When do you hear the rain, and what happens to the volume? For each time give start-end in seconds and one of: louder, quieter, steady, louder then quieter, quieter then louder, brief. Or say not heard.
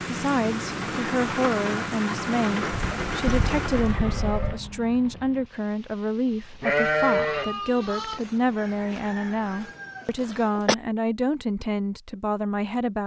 0.0-10.2 quieter.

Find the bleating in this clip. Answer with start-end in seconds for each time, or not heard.
2.8-4.6, 6.6-8.2.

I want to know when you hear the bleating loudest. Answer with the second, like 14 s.
7 s.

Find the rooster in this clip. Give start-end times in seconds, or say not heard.
8.2-10.8.